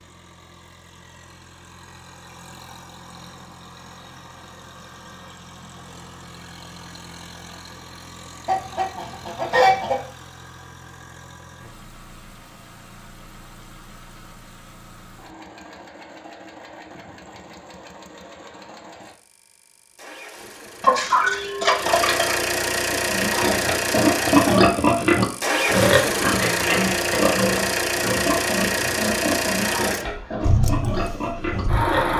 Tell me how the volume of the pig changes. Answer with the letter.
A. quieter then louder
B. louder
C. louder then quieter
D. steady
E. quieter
E.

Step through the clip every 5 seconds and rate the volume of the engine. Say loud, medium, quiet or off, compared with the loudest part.
quiet, quiet, quiet, quiet, loud, loud, loud.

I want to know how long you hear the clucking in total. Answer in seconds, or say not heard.
3 s.